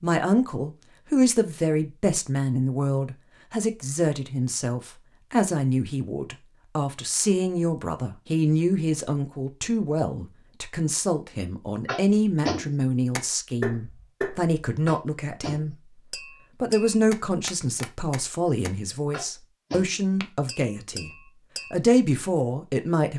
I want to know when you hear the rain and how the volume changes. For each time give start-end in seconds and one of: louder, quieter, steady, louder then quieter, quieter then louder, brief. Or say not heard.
not heard.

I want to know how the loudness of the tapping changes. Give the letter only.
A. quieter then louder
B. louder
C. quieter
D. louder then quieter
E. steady
C.